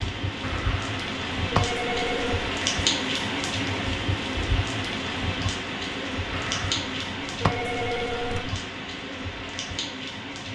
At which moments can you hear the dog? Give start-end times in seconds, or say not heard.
not heard.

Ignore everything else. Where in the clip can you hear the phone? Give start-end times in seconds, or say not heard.
0.4-2.5, 6.3-8.6.